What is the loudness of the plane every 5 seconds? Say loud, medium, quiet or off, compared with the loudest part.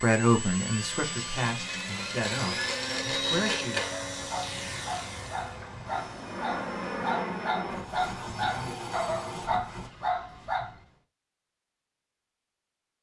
loud, loud, off.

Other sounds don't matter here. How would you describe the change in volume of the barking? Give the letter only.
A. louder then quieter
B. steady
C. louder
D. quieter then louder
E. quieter
C.